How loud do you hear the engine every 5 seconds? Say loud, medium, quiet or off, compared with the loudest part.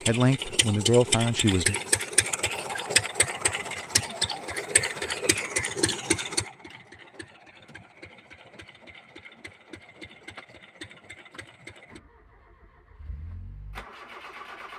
loud, medium, quiet.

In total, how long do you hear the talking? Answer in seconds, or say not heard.
2 s.